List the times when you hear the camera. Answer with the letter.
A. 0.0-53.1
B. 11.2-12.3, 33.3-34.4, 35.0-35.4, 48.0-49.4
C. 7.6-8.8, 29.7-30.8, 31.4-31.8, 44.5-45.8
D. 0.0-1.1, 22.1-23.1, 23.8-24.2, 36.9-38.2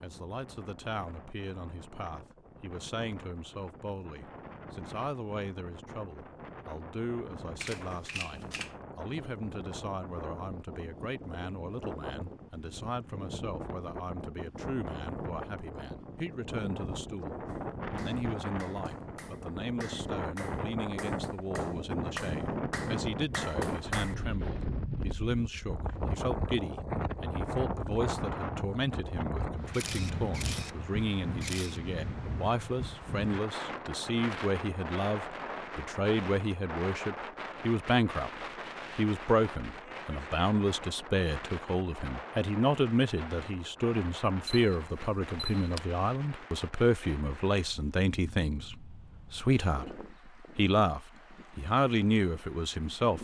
C.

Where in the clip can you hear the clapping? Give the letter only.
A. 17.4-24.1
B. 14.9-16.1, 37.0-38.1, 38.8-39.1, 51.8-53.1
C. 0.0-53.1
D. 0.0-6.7
A.